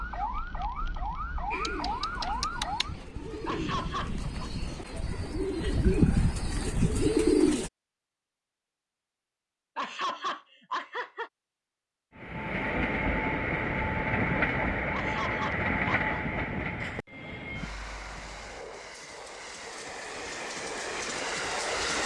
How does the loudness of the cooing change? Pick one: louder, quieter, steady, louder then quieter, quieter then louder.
louder.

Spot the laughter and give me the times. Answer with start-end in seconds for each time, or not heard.
3.5-4.5, 9.8-11.3, 14.9-16.2.